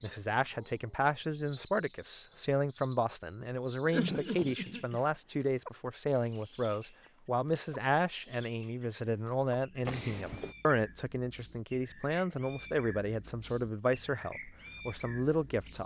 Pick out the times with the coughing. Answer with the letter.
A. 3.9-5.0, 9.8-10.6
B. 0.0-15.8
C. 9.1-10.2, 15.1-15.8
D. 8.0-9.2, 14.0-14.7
A.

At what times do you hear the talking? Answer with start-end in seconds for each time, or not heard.
0.0-15.8.